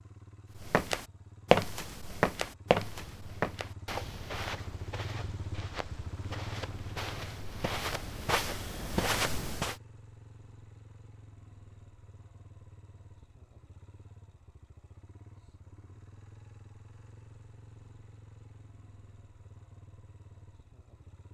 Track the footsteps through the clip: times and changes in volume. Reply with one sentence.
You can hear the footsteps from 0.6 to 9.8 s, getting quieter then louder.